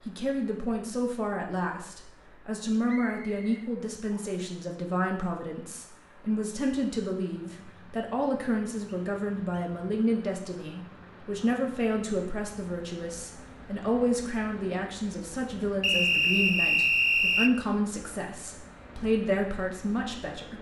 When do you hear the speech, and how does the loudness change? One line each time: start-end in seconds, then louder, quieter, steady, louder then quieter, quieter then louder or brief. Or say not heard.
0.1-20.5 steady.